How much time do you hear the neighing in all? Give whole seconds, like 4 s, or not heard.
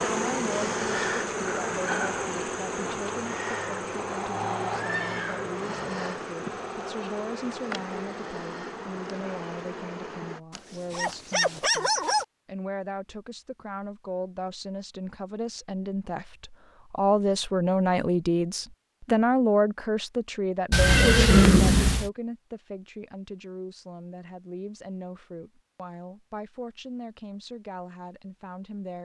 3 s.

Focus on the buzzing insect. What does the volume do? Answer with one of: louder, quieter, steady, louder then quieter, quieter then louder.
quieter.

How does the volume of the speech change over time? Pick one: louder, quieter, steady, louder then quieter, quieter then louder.
louder then quieter.